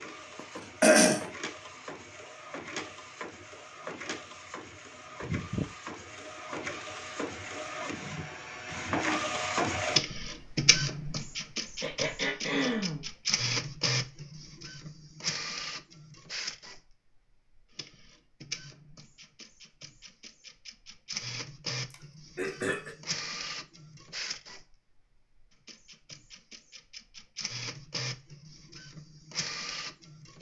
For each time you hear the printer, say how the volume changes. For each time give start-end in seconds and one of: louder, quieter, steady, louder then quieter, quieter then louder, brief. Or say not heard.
0.0-30.3 louder then quieter.